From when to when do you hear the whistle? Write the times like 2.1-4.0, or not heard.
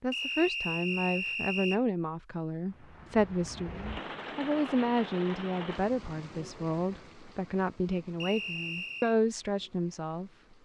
0.1-1.8, 8.2-9.2.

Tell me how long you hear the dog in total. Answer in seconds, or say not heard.
not heard.